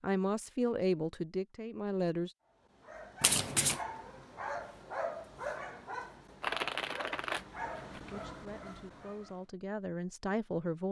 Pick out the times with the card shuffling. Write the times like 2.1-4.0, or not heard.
3.2-3.8, 6.4-8.2.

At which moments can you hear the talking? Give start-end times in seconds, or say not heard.
0.0-2.3, 7.9-10.8.